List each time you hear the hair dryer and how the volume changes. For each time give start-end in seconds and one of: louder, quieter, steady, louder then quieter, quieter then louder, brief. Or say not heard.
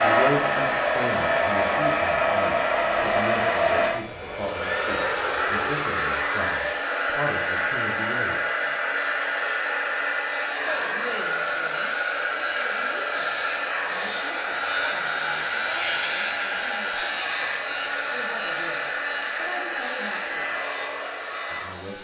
0.0-21.9 quieter.